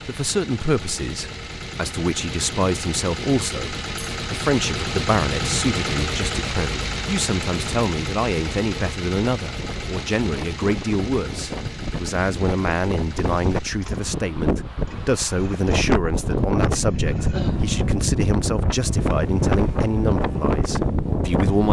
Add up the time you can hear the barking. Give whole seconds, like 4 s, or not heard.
not heard.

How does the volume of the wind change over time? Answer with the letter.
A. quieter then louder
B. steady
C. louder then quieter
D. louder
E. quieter
D.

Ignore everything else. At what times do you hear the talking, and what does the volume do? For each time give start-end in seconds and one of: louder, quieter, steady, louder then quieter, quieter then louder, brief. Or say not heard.
0.1-21.6 steady.